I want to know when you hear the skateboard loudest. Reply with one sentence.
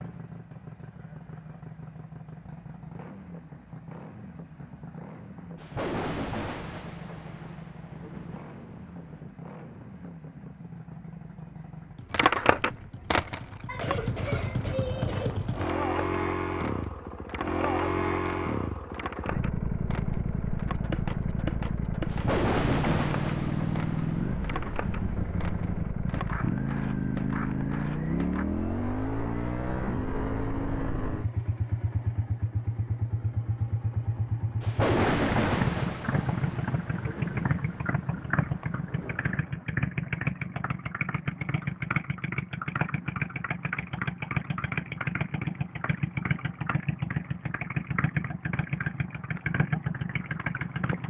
The loudest moment of the skateboard is at 13 seconds.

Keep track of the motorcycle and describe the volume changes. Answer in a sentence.
The volume of the motorcycle goes up.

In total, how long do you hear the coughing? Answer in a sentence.
You can hear the coughing for 2 seconds altogether.